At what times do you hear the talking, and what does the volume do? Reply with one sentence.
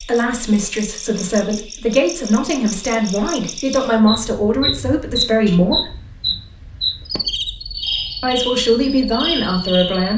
You can hear the talking from 0.0 to 5.9 s, at a steady volume; and briefly from 8.2 to 10.1 s.